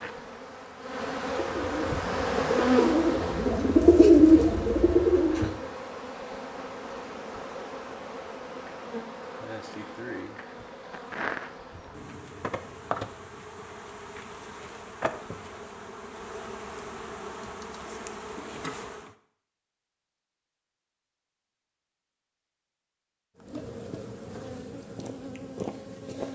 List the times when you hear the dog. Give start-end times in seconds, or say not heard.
not heard.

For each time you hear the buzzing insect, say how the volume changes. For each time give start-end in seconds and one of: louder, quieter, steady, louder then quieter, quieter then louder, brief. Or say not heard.
0.0-19.1 quieter
23.4-26.3 brief.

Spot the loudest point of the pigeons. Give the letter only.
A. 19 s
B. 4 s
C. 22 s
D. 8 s
B.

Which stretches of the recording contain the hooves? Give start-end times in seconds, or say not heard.
not heard.